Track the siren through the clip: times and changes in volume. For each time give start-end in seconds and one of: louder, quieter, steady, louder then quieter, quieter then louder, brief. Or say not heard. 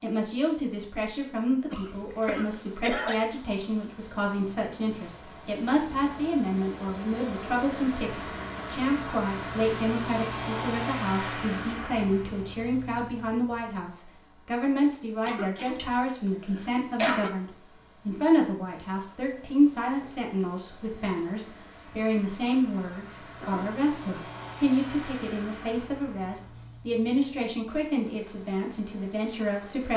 not heard.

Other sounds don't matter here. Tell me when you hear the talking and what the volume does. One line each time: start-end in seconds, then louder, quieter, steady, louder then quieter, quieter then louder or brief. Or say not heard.
0.0-29.9 steady.